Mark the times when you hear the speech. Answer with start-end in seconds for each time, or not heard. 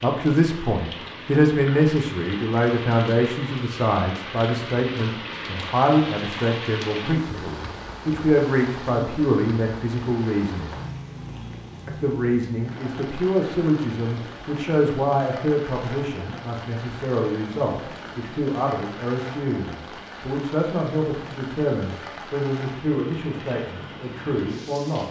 0.0-10.9, 11.8-25.0.